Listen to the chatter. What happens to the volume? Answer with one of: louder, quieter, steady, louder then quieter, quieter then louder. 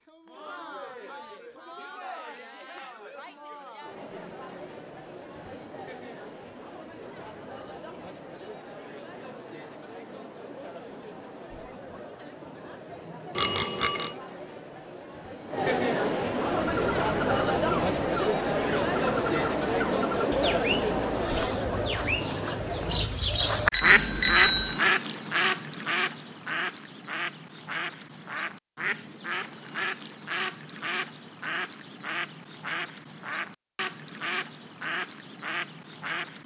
louder.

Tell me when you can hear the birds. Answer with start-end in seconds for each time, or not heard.
16.4-36.4.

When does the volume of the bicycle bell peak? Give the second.
24 s.